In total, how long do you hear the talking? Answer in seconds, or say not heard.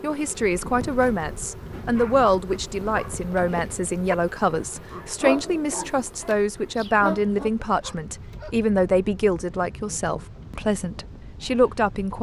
12 s.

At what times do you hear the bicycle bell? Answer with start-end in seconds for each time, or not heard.
not heard.